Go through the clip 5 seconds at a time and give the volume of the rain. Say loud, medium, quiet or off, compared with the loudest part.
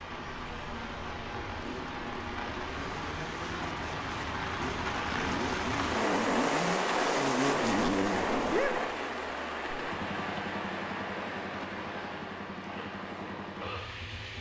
medium, loud, medium.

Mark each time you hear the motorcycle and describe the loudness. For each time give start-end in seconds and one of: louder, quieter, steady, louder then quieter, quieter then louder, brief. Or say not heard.
0.0-14.3 louder then quieter.